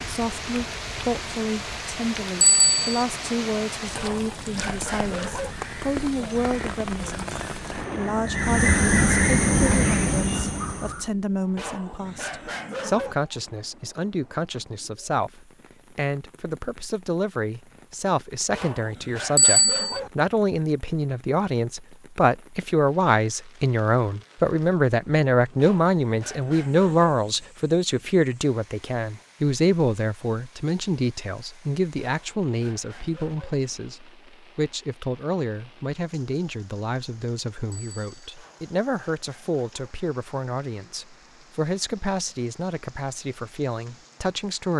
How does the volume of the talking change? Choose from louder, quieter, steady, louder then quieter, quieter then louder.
louder then quieter.